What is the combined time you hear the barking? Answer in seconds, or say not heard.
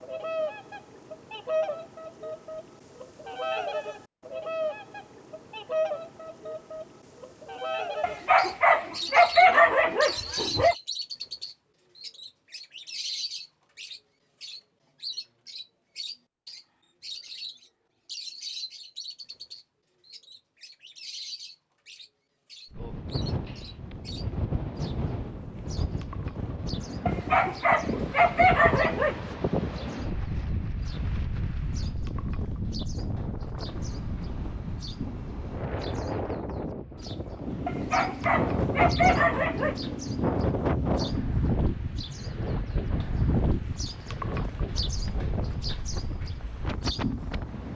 7 s.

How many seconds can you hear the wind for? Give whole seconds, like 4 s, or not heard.
25 s.